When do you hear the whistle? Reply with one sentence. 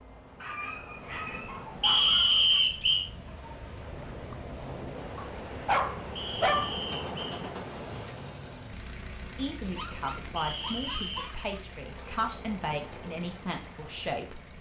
The whistle can be heard from 1.8 to 3.1 s, from 6.2 to 7.4 s and from 10.3 to 11.3 s.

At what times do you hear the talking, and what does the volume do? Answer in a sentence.
The talking can be heard from 9.3 to 14.5 s, at a steady volume.